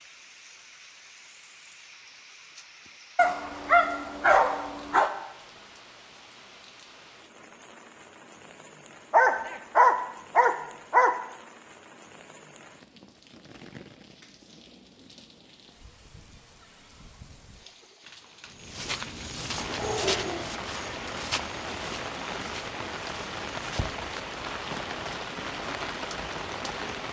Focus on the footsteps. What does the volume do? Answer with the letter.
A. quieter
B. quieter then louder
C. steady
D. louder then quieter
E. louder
A.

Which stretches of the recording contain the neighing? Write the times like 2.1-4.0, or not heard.
not heard.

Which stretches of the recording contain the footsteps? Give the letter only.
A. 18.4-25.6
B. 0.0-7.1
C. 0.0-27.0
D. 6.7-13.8
A.